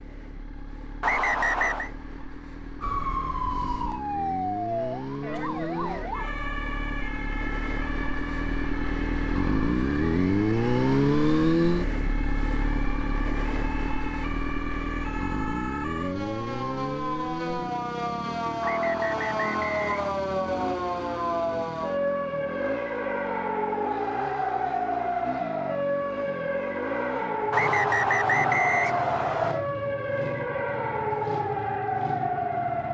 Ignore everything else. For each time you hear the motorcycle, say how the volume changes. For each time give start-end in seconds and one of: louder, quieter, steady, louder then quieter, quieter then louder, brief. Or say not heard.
0.0-32.9 louder then quieter.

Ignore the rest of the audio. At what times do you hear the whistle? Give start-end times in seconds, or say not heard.
1.0-1.9, 18.6-20.1, 27.5-29.6.